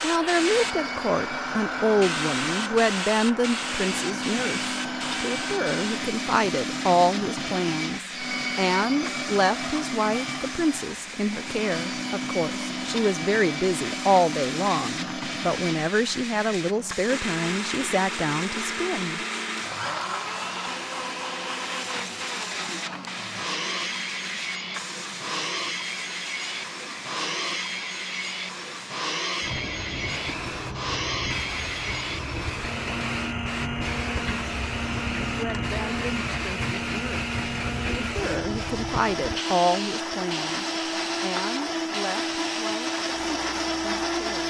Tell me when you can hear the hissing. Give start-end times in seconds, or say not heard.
0.0-44.4.